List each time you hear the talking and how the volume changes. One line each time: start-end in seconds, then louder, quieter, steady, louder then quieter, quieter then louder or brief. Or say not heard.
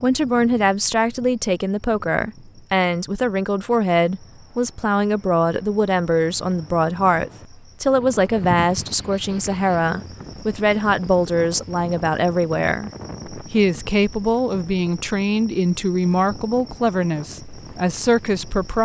0.0-18.7 steady.